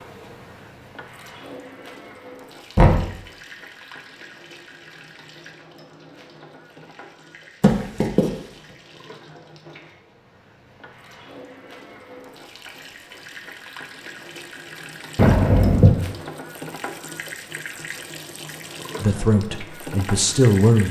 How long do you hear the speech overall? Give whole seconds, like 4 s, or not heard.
2 s.